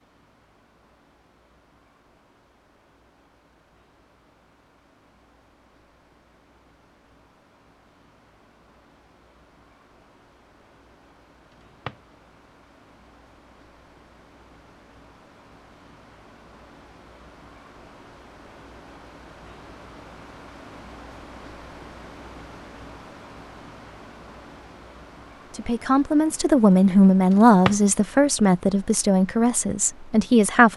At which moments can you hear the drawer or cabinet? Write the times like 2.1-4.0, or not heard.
11.5-12.0, 27.3-27.8.